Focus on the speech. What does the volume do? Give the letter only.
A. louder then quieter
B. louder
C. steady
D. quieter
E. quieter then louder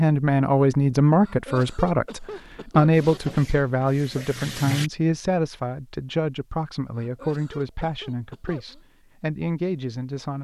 D.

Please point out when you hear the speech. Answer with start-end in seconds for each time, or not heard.
0.0-10.3.